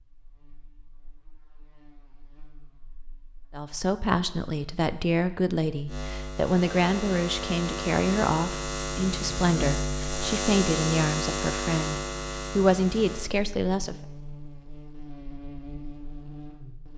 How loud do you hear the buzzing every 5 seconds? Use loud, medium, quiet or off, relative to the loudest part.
quiet, loud, loud, medium.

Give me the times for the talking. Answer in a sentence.
The talking can be heard from 3.5 to 13.9 s.